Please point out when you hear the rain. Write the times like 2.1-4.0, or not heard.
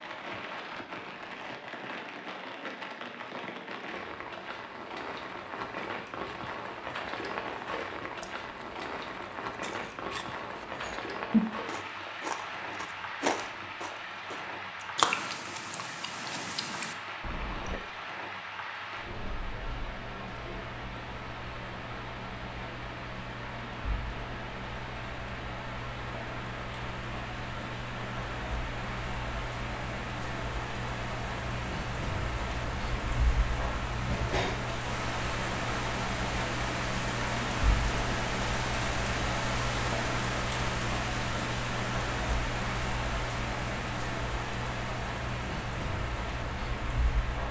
0.0-47.4.